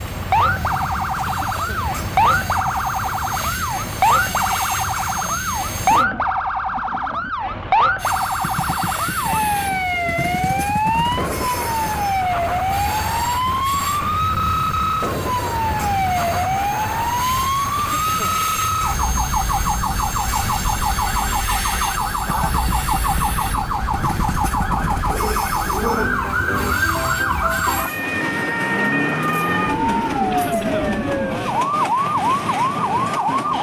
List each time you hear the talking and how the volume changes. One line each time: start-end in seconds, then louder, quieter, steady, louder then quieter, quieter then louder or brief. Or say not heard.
not heard.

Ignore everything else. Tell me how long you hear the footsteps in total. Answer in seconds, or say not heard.
not heard.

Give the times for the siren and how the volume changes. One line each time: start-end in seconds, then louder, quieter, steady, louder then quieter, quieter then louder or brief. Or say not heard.
0.0-33.5 steady.